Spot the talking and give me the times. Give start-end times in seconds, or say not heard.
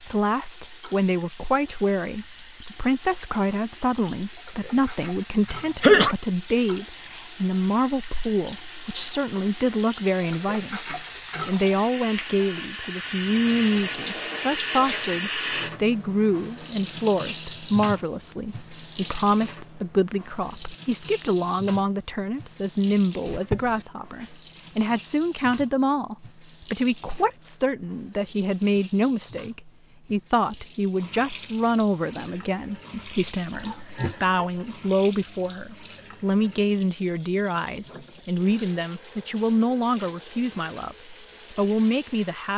0.0-42.5.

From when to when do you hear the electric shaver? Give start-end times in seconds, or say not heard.
not heard.